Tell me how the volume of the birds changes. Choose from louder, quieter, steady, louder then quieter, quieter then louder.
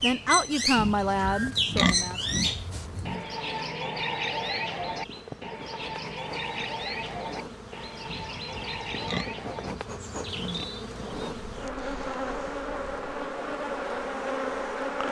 quieter.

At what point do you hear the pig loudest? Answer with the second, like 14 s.
2 s.